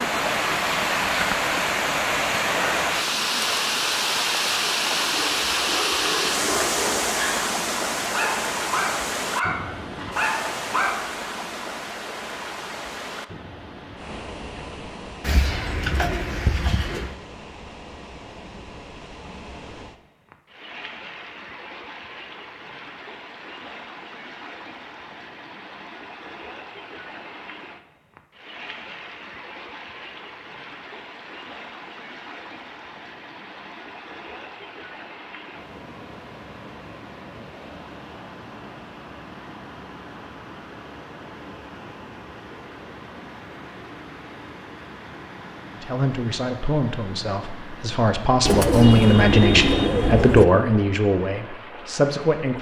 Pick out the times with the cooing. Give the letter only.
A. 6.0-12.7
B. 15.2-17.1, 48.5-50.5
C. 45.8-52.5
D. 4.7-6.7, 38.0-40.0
B.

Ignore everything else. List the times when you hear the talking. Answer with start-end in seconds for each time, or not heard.
45.8-52.5.